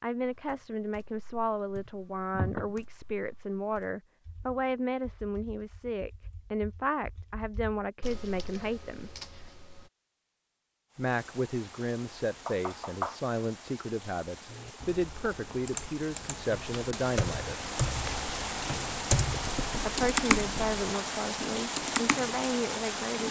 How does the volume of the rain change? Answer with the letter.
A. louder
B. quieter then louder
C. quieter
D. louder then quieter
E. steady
A.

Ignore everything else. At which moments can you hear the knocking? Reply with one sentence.
You can hear the knocking from 2.3 to 2.8 s, from 12.4 to 13.2 s and from 19.4 to 20.9 s.